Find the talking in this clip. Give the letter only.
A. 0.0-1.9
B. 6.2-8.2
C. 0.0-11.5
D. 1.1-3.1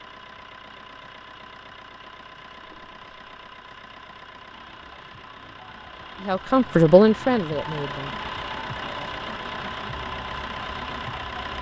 B.